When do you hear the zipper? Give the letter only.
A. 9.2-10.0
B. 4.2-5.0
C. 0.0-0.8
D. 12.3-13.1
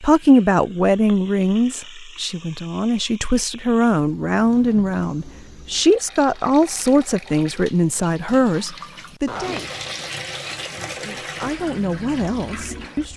A.